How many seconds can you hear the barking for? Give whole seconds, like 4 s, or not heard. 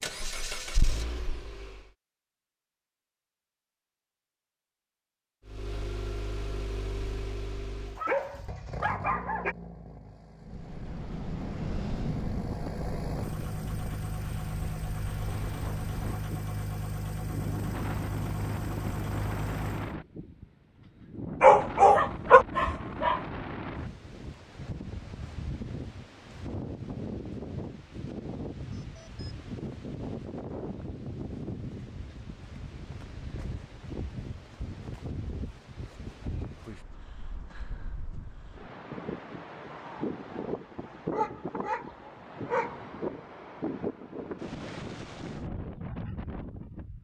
5 s.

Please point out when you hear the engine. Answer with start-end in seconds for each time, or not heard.
0.0-1.9, 5.5-19.9.